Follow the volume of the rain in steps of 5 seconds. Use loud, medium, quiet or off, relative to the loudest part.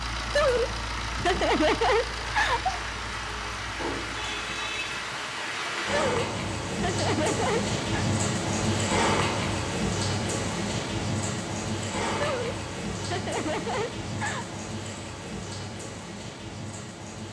medium, loud, loud, medium.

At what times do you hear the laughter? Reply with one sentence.
You can hear the laughter from 0.3 to 2.8 s, from 5.8 to 8.1 s and from 12.2 to 14.4 s.